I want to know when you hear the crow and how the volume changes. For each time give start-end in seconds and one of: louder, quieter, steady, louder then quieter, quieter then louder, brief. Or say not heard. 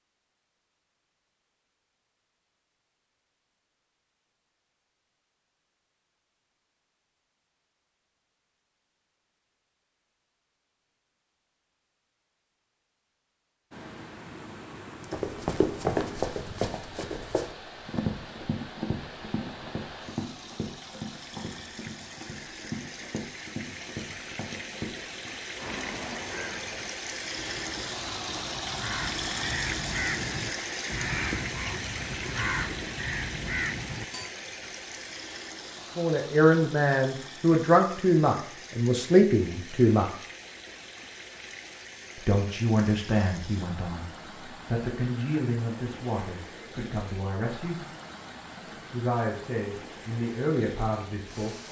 25.6-34.3 louder.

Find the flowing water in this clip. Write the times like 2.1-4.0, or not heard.
13.7-51.6.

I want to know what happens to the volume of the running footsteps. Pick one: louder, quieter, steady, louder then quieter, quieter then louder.
quieter.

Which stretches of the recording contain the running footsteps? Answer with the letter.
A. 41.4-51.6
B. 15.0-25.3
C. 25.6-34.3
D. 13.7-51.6
B.